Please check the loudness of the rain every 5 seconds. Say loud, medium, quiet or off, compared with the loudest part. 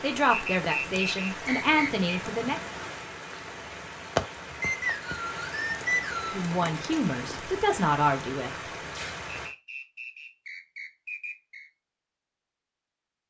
loud, loud, off.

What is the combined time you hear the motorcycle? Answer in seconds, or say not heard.
not heard.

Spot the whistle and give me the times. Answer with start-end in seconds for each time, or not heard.
0.3-2.1, 4.6-6.4, 9.3-11.7.